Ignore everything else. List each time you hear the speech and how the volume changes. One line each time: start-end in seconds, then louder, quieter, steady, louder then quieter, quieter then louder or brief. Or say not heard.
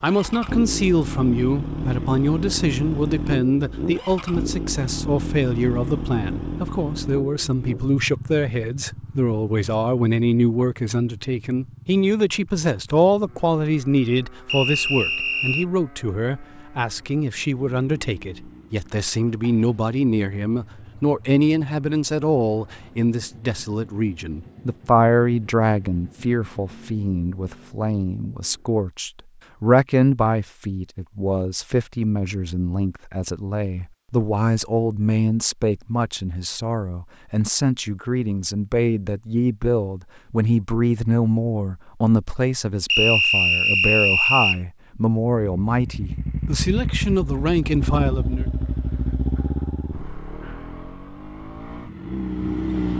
0.0-48.5 steady.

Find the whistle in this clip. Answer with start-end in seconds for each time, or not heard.
14.4-15.7, 42.9-44.6.